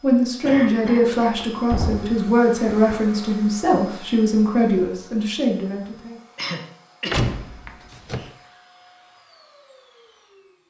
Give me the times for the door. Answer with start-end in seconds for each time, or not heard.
1.4-3.0, 7.1-8.3.